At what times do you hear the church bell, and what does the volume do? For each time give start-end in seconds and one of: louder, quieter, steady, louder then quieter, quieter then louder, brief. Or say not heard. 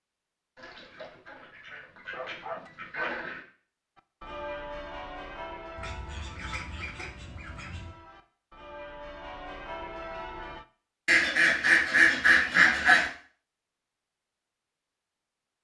4.0-10.7 quieter then louder.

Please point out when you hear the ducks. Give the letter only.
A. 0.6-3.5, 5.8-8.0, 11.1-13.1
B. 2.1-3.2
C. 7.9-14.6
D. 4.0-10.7
A.